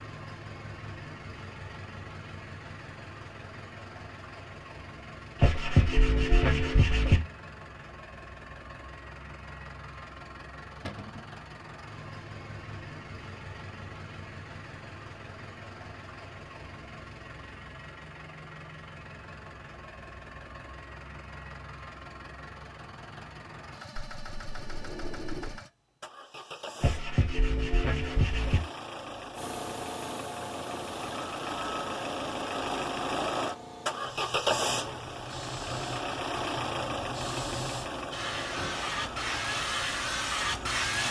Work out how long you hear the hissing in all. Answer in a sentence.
The hissing can be heard for 12 seconds in total.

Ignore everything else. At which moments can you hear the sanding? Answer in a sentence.
You can hear the sanding from 5.4 to 7.2 s and from 26.8 to 28.6 s.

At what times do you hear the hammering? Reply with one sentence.
You can't hear the hammering here.